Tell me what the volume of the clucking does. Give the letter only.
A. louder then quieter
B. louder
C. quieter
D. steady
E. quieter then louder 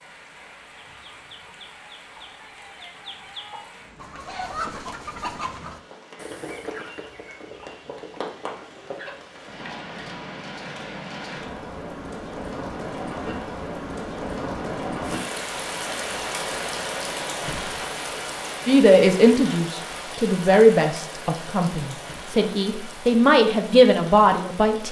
A.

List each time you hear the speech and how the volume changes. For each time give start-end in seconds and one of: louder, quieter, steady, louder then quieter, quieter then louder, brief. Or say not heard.
18.6-24.8 quieter then louder.